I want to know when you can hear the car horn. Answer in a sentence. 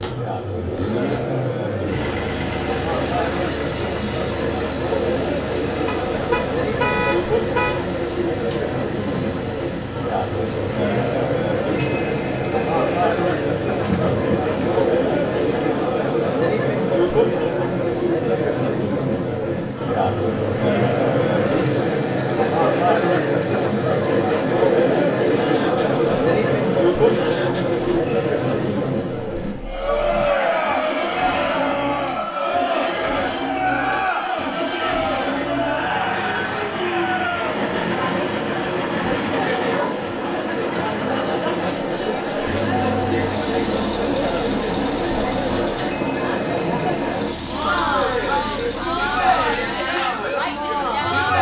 The car horn can be heard from 5.8 to 7.8 s.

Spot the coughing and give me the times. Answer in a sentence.
You can't hear the coughing here.